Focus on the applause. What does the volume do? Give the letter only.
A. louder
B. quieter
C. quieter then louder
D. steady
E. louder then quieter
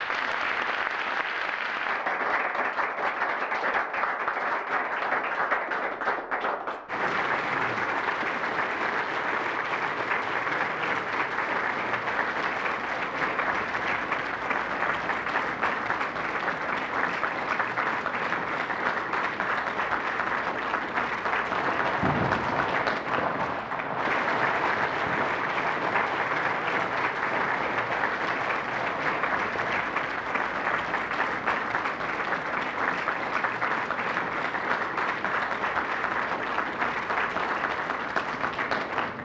D.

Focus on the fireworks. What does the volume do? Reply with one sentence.
The loudness of the fireworks goes down.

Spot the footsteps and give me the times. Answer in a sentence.
The footsteps can't be heard in this clip.